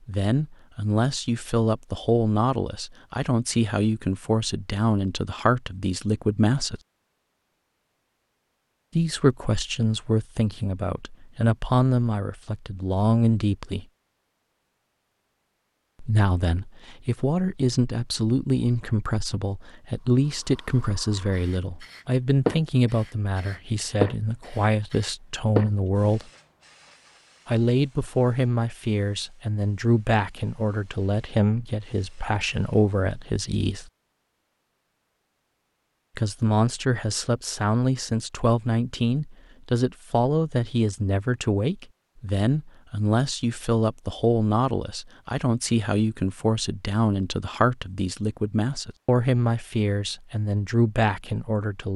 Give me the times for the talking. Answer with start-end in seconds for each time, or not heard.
0.1-6.8, 8.9-13.8, 16.0-26.2, 27.4-33.9, 36.1-51.9.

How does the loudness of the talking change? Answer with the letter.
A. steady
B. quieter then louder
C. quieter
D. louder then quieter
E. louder
A.